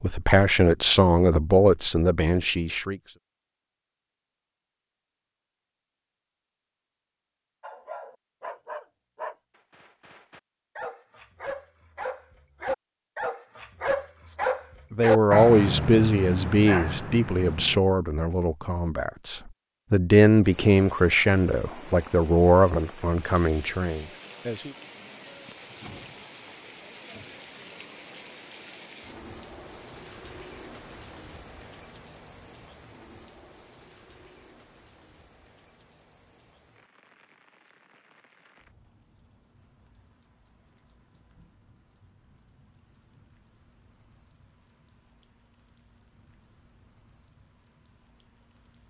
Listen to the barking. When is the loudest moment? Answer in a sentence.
The volume of the barking peaks at 15 seconds.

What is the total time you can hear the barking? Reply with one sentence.
You can hear the barking for 10 seconds altogether.